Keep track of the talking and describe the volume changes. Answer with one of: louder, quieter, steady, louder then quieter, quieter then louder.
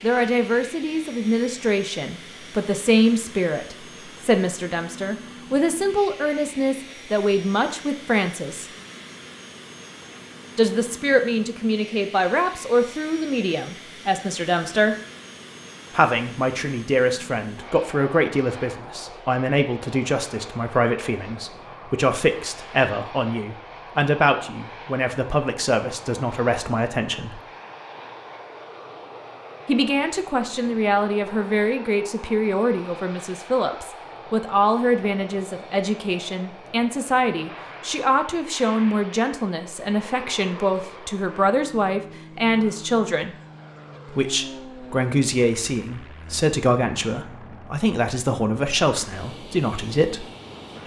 steady.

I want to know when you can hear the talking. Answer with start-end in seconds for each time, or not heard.
0.0-8.7, 10.6-14.9, 15.9-27.4, 29.6-43.4, 44.0-50.2.